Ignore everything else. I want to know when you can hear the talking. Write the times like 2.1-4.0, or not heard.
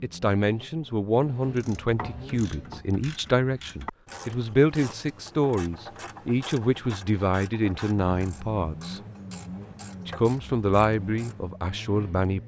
0.0-9.0, 10.1-12.4.